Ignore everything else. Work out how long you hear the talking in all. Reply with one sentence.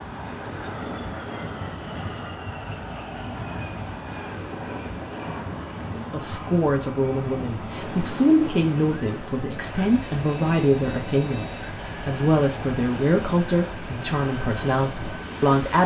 You can hear the talking for 10 seconds altogether.